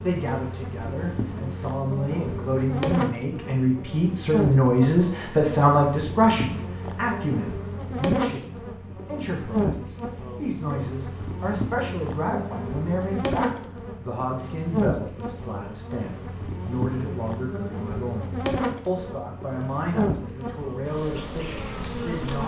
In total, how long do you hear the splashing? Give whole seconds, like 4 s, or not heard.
not heard.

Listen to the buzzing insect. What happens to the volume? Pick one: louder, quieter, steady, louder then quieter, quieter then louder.
steady.